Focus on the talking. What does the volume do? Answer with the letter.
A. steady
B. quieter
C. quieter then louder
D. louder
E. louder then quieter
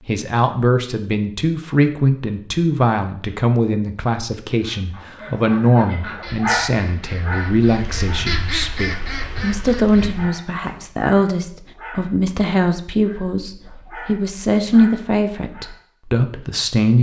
A.